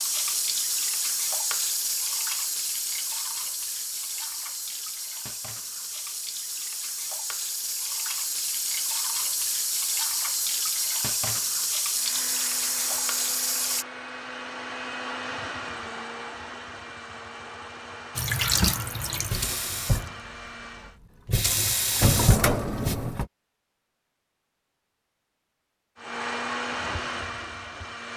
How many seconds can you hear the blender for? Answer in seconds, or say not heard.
11 s.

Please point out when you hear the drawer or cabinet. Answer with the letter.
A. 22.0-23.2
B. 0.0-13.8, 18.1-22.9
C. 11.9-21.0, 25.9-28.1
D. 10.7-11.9
A.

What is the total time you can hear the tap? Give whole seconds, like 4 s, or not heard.
19 s.